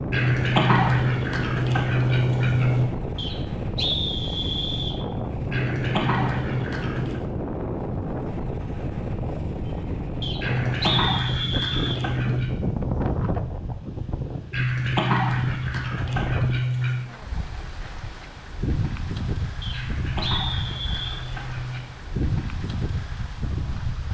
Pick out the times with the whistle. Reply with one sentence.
The whistle can be heard from 3.1 to 5.0 s, from 10.2 to 12.0 s and from 19.6 to 21.2 s.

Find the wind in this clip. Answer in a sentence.
You can hear the wind from 0.0 to 24.1 s.